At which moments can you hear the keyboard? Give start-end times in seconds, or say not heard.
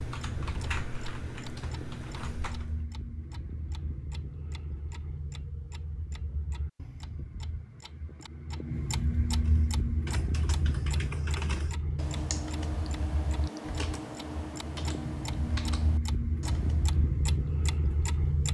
0.0-2.9, 9.4-17.1.